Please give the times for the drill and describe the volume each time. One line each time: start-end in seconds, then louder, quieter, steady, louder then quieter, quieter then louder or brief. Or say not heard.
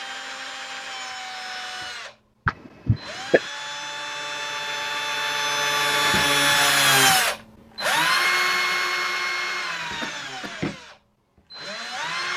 0.0-12.3 louder then quieter.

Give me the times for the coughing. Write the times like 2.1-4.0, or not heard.
2.5-3.4, 10.0-10.6.